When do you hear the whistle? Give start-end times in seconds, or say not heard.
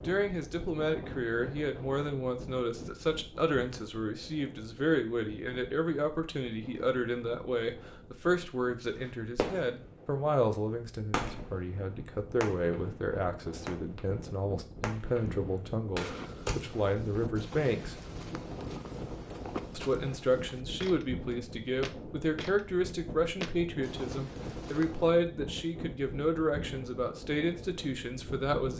not heard.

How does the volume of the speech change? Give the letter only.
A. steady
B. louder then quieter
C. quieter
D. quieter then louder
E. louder
A.